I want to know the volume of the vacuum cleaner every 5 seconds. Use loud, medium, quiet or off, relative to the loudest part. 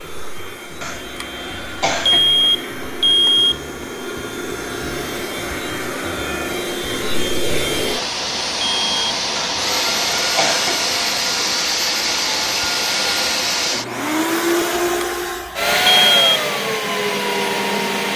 medium, loud, loud, loud.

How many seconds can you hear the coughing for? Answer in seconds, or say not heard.
3 s.